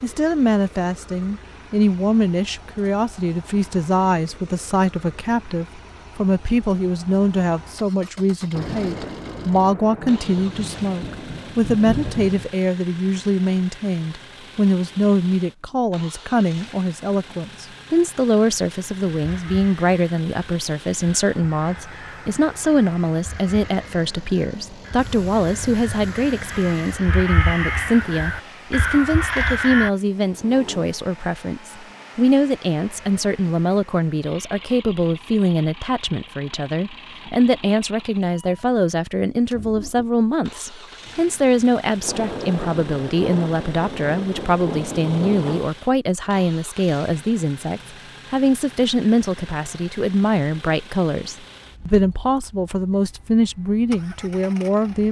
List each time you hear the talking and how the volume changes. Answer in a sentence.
You can hear the talking from 0.0 to 55.0 s, at a steady volume.